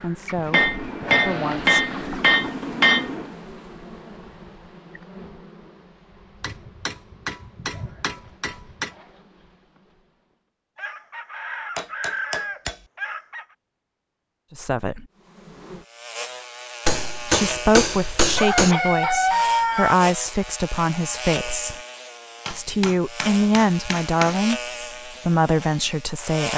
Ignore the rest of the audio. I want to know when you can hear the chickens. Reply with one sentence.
You can hear the chickens from 0.2 to 2.5 s, from 10.8 to 13.4 s and from 18.4 to 19.9 s.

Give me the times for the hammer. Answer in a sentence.
The hammer can be heard from 0.5 to 3.3 s, from 6.4 to 8.9 s, from 11.8 to 12.8 s, from 16.9 to 18.8 s and from 22.4 to 24.4 s.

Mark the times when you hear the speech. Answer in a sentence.
The speech can be heard from 0.0 to 1.8 s, from 14.5 to 15.1 s, from 17.2 to 21.8 s and from 22.5 to 26.5 s.